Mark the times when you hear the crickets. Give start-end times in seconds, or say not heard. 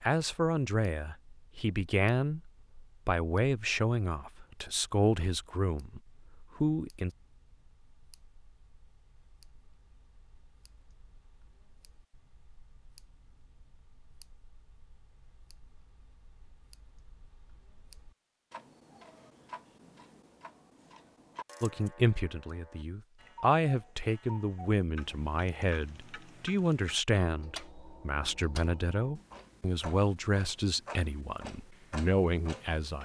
not heard.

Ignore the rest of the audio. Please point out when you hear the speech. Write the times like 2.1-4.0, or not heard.
0.0-7.1, 21.6-33.0.